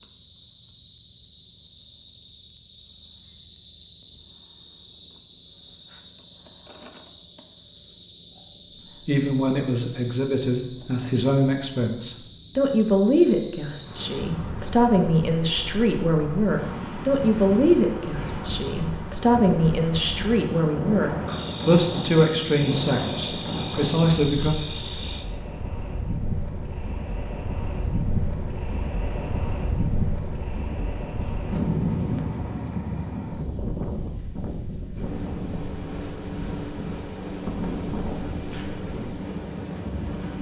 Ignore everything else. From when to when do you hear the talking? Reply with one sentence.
You can hear the talking from 9.1 to 24.6 s.